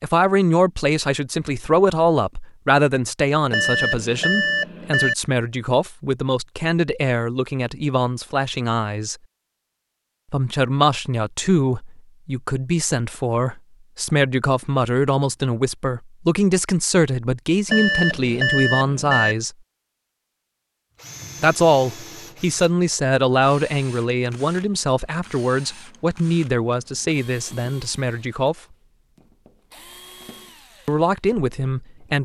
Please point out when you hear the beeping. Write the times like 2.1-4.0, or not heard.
3.5-5.2, 17.6-19.4.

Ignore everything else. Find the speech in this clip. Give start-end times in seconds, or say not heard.
0.0-9.2, 10.3-19.5, 21.4-28.6, 30.9-32.1.